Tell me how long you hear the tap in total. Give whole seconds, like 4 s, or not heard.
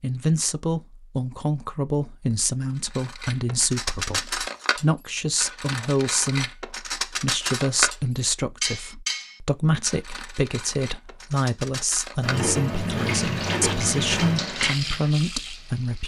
3 s.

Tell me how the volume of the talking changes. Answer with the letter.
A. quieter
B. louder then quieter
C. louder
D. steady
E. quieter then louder
D.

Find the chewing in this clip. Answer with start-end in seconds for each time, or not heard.
12.2-14.6.